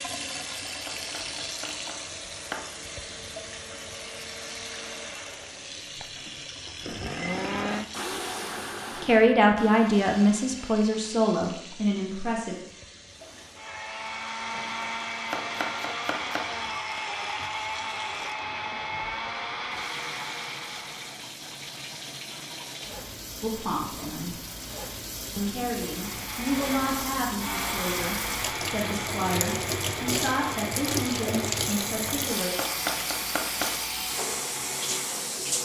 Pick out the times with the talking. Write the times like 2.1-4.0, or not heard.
8.9-12.6, 23.4-24.4, 25.4-32.5.